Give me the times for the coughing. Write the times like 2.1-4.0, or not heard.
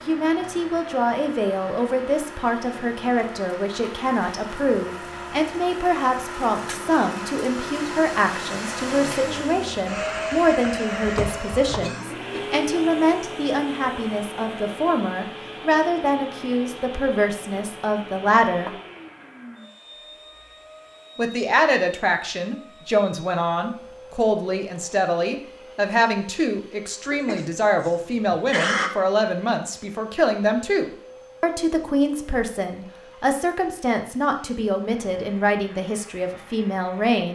11.8-12.6, 27.1-28.9.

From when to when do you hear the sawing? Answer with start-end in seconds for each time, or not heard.
not heard.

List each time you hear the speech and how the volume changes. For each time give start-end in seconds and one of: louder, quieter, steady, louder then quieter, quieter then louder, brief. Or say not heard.
0.1-18.8 steady
21.1-37.3 steady.